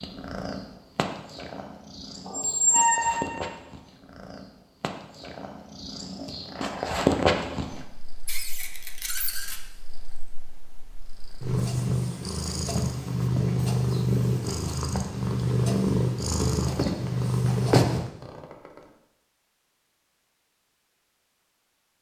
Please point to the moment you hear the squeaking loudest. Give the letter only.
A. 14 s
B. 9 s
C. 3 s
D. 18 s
C.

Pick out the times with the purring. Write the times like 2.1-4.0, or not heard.
0.0-18.1.